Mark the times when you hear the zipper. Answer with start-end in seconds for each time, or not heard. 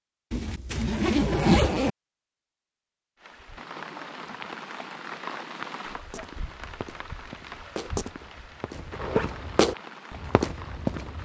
0.3-1.9, 8.9-9.4.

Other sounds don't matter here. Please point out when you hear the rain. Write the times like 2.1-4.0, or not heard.
3.1-11.2.